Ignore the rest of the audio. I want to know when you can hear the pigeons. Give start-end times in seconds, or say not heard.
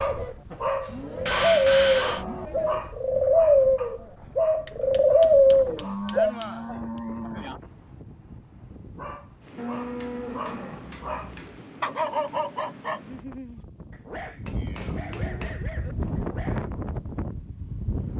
0.0-6.3.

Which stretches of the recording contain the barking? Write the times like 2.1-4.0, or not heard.
0.0-6.0, 8.8-16.6.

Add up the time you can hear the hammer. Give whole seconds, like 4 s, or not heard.
7 s.